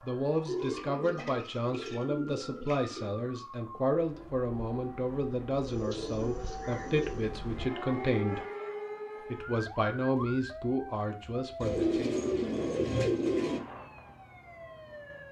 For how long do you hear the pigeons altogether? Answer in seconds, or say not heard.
6 s.